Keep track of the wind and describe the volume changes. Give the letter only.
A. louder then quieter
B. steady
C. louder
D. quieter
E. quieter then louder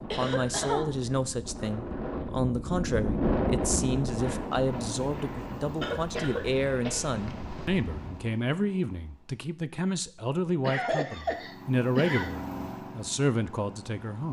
A.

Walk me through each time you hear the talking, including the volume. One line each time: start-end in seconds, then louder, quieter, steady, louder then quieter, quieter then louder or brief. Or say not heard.
0.0-14.2 steady.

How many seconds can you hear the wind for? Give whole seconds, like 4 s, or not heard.
8 s.